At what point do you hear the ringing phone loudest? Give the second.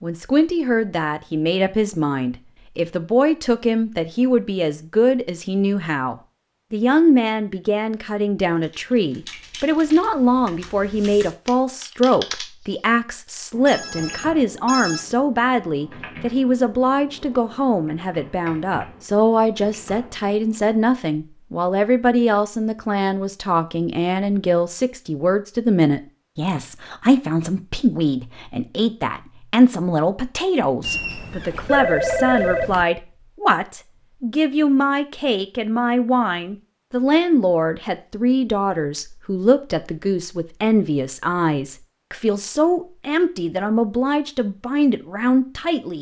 32 s.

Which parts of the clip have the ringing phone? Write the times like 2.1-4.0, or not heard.
13.7-15.1, 30.8-32.9.